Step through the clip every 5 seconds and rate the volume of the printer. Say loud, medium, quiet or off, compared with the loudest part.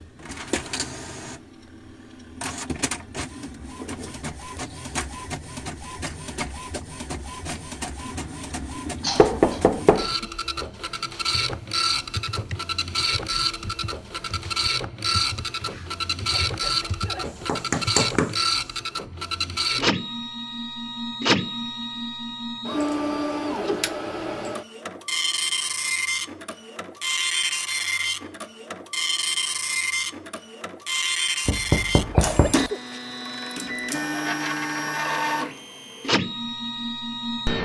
medium, medium, loud, loud, loud, loud, loud, loud.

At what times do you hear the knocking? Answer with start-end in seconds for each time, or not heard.
9.2-10.1, 17.2-18.4, 31.4-32.7.